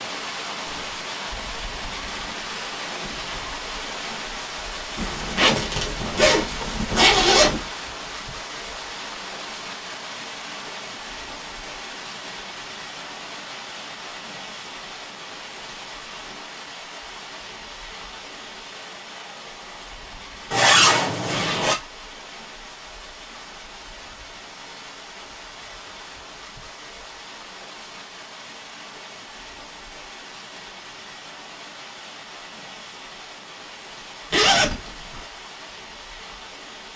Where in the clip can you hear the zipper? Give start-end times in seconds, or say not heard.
5.0-7.7, 20.5-21.8, 34.3-35.2.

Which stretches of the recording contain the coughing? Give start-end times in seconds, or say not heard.
not heard.